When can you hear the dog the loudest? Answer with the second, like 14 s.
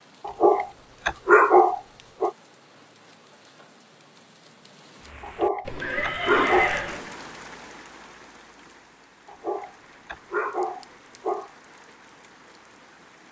1 s.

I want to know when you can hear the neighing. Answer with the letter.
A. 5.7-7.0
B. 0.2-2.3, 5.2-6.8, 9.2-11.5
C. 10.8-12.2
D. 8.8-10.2
A.